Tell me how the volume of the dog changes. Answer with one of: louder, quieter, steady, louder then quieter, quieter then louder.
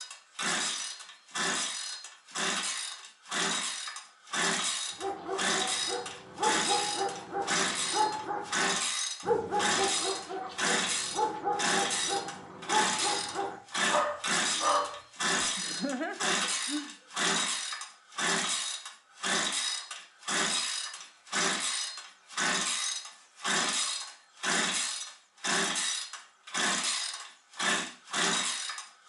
steady.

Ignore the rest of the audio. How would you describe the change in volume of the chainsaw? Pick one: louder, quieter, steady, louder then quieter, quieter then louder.
steady.